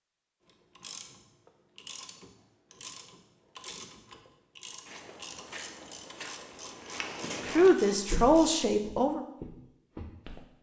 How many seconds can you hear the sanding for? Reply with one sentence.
The sanding can't be heard in this clip.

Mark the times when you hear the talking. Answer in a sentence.
The talking can be heard from 7.5 to 9.2 s.